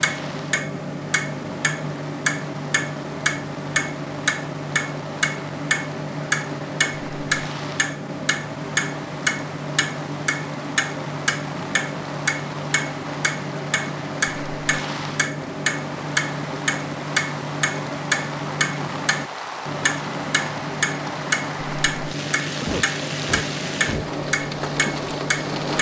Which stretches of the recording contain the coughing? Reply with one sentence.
You can hear the coughing from 22.6 to 24.1 s.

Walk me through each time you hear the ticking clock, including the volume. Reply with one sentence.
You can hear the ticking clock from 0.0 to 25.7 s, at a steady volume.